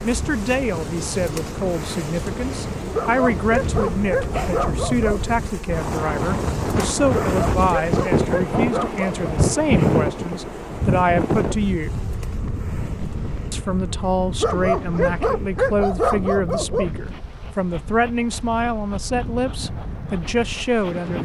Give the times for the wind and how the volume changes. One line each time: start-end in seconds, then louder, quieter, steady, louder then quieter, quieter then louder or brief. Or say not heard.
0.0-21.1 louder then quieter.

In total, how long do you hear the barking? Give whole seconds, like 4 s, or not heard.
7 s.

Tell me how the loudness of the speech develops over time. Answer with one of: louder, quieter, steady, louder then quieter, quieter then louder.
steady.